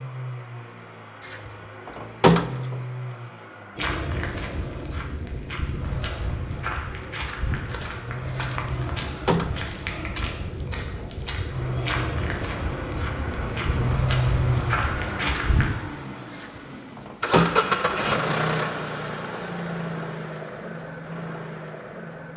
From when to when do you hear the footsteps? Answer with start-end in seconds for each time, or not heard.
3.8-15.7.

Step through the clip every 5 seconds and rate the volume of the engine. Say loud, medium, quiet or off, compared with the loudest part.
medium, medium, loud, loud, medium.